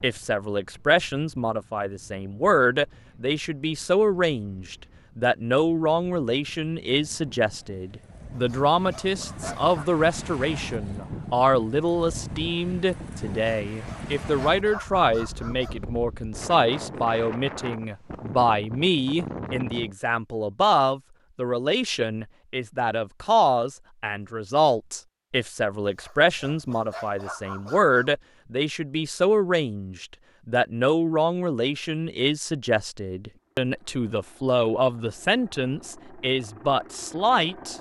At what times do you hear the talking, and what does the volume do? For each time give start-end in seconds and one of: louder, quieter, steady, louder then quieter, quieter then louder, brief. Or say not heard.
0.0-37.7 steady.